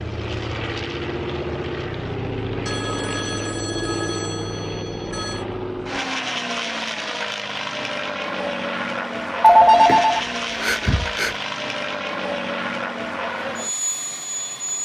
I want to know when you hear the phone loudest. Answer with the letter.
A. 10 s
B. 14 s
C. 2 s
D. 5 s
A.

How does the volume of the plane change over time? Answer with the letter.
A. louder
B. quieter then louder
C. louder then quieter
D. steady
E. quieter
D.